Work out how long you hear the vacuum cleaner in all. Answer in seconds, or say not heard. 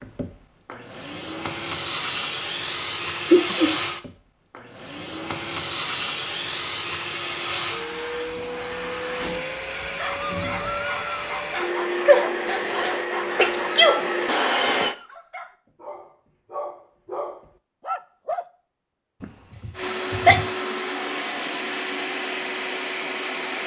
19 s.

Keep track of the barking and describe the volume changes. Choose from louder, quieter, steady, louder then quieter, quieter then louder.
quieter then louder.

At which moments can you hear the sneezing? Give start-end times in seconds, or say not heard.
3.3-3.8, 12.1-14.1, 19.2-20.4.